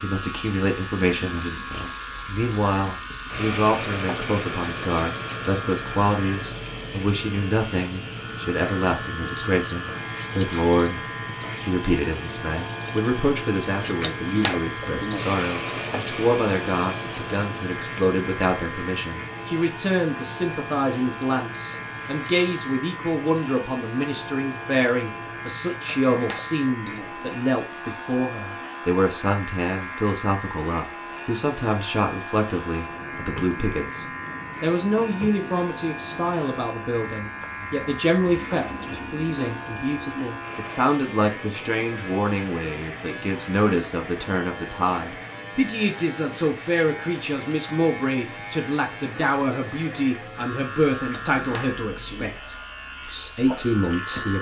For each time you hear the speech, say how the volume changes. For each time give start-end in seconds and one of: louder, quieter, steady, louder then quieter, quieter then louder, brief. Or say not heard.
0.0-54.3 steady.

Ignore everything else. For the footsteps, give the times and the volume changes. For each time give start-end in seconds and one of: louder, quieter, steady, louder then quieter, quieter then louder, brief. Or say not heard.
not heard.